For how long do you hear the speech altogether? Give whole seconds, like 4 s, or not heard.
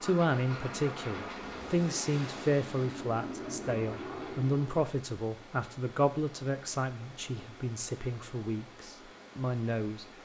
10 s.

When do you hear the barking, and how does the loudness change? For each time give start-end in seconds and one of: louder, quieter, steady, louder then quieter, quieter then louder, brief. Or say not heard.
not heard.